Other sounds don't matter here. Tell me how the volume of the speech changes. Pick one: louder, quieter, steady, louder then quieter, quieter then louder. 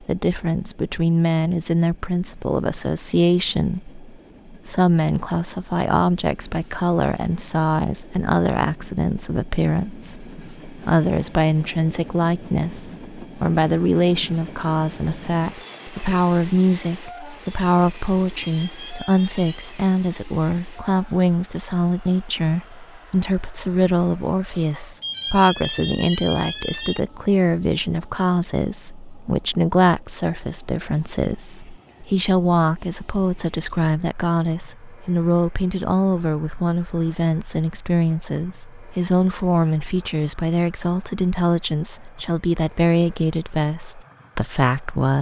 steady.